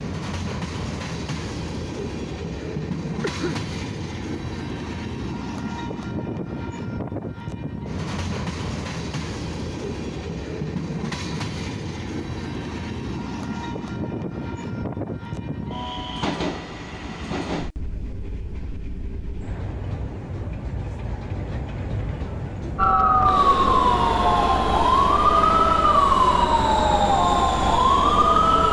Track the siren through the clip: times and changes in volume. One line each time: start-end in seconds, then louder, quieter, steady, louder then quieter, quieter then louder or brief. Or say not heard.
22.8-28.6 steady.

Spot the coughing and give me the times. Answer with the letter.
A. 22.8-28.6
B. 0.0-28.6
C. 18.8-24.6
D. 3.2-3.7
D.